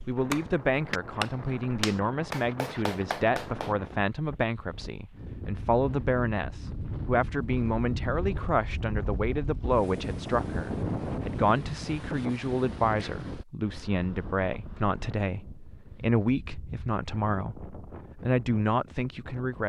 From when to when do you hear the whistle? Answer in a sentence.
You can't hear the whistle here.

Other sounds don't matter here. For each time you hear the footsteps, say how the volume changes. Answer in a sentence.
The footsteps can't be heard in this clip.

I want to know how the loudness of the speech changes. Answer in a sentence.
The loudness of the speech stays about the same.